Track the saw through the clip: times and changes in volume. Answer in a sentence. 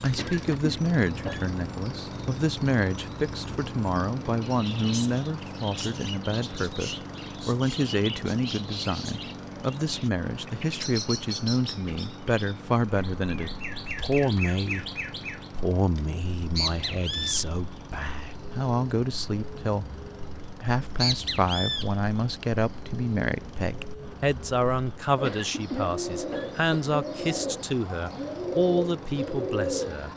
The saw can't be heard in this clip.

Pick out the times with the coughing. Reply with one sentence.
You can hear the coughing from 0.1 to 1.6 s and from 25.2 to 26.9 s.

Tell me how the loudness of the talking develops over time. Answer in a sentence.
The loudness of the talking stays about the same.